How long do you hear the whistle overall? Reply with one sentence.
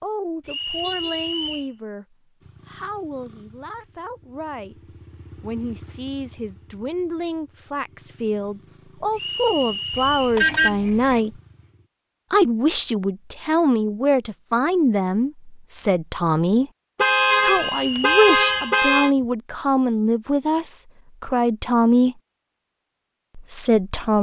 The whistle can be heard for 4 seconds in total.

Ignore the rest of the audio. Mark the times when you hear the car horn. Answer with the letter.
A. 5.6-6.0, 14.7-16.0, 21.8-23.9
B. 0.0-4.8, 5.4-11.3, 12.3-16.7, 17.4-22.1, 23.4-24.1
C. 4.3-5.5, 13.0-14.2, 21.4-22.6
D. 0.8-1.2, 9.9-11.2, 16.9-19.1
D.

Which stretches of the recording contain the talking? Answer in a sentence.
You can hear the talking from 0.0 to 4.8 s, from 5.4 to 11.3 s, from 12.3 to 16.7 s, from 17.4 to 22.1 s and from 23.4 to 24.1 s.